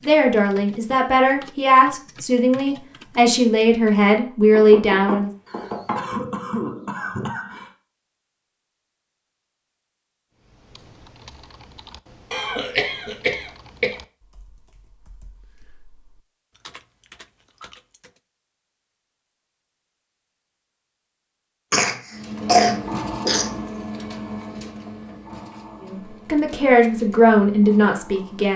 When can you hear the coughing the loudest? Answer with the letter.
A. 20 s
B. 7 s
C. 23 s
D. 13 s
C.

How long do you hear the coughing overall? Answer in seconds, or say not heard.
6 s.